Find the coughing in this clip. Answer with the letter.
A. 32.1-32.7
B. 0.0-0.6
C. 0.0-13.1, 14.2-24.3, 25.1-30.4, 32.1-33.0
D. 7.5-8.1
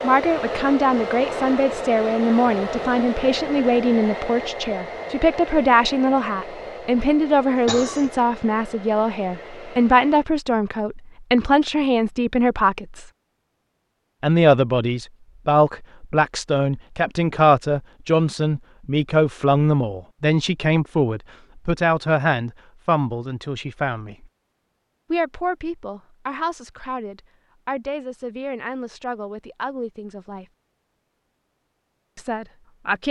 D.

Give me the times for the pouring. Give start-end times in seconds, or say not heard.
not heard.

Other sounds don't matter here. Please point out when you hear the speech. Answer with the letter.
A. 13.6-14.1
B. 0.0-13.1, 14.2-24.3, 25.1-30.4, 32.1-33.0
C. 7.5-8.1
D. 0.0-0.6
B.